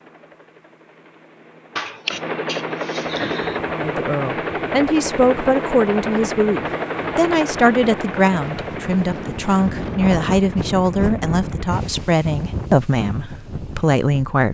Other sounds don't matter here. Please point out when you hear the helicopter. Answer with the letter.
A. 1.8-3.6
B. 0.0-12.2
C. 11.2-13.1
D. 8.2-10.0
B.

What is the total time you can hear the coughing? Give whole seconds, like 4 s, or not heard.
2 s.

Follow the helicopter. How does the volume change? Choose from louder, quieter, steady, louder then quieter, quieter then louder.
louder then quieter.